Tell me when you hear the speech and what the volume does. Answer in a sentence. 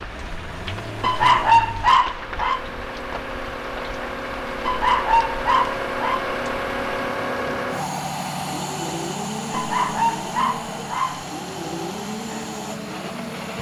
You can't hear the speech here.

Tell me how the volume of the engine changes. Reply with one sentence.
The loudness of the engine goes up, then down.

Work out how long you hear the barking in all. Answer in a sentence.
The barking can be heard for 5 seconds in total.